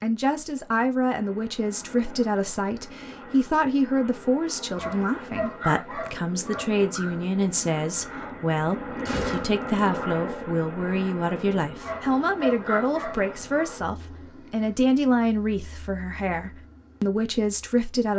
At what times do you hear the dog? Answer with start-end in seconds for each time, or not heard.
4.8-7.2, 11.8-13.7.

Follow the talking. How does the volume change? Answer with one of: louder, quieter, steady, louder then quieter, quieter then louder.
steady.